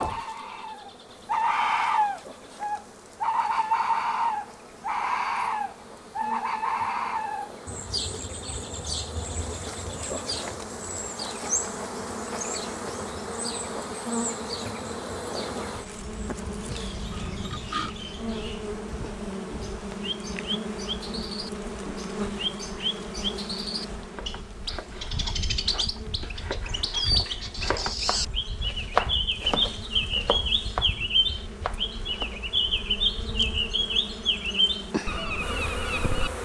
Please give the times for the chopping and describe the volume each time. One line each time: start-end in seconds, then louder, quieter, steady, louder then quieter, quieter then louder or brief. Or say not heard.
24.1-32.5 louder then quieter.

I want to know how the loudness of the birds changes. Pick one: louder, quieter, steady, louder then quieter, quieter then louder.
quieter then louder.